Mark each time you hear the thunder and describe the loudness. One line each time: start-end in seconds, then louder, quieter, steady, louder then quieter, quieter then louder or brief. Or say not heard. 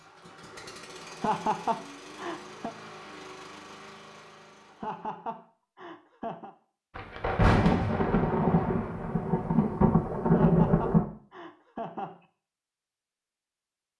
7.0-11.1 quieter then louder.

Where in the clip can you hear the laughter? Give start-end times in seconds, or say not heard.
1.1-2.7, 4.7-6.5, 10.2-12.2.